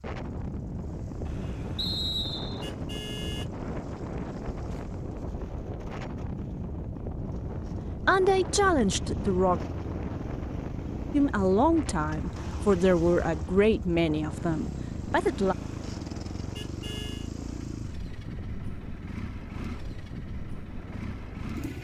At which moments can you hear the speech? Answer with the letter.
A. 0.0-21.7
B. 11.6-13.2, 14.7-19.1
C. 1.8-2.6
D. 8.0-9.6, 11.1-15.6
D.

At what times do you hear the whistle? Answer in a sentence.
You can hear the whistle from 1.8 to 2.6 s.